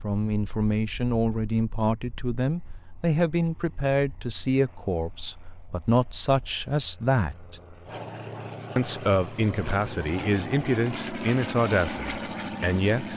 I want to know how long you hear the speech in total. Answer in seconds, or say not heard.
12 s.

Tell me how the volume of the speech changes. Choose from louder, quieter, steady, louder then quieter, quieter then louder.
steady.